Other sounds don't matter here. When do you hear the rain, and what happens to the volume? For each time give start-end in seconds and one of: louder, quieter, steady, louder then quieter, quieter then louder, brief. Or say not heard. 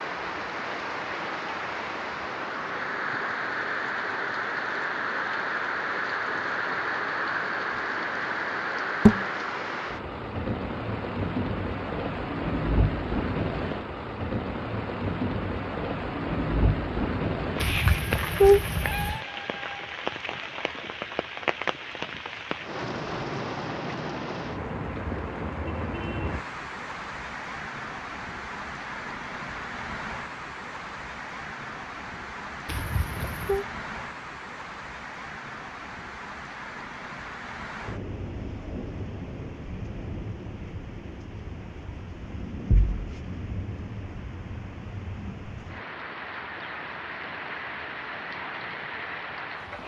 0.0-49.8 quieter.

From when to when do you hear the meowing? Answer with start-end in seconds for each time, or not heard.
17.6-19.2, 32.6-33.6.